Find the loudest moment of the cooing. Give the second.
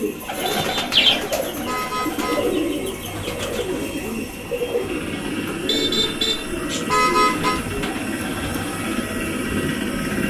1 s.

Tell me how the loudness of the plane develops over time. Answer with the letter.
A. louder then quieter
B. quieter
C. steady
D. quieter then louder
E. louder
E.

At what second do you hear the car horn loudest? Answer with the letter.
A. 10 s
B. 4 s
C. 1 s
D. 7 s
D.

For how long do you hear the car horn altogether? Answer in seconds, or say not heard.
4 s.